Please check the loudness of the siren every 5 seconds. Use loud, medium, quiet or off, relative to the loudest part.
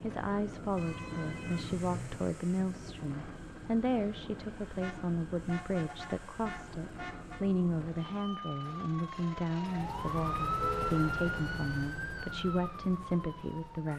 quiet, medium, loud.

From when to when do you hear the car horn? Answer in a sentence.
The car horn can be heard from 0.8 to 2.2 s, from 4.8 to 7.5 s and from 10.5 to 11.0 s.